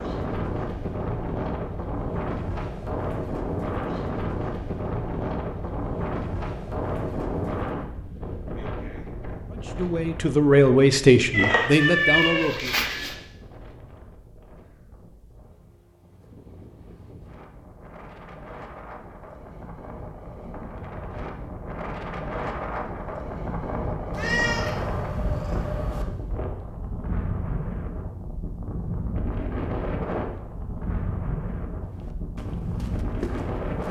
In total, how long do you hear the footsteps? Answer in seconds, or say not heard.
2 s.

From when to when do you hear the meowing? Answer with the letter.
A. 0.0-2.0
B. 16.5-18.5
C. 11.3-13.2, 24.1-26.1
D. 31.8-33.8
C.